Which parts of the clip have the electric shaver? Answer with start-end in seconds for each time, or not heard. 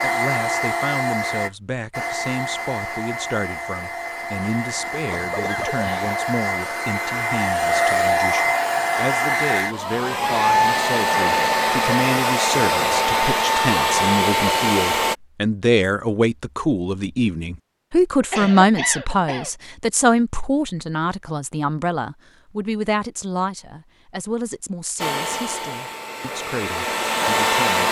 not heard.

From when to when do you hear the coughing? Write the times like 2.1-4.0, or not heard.
5.0-6.2, 18.2-19.5.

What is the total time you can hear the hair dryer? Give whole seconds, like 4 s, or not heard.
18 s.